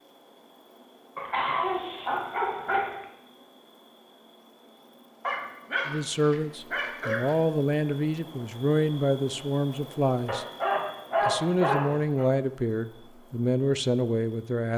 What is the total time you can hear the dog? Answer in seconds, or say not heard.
6 s.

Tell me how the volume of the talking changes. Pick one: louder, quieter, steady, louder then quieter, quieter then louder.
steady.